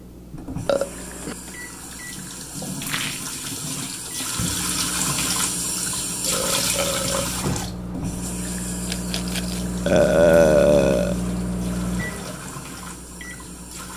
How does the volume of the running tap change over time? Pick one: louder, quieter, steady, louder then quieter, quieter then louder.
louder then quieter.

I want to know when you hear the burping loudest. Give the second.
10 s.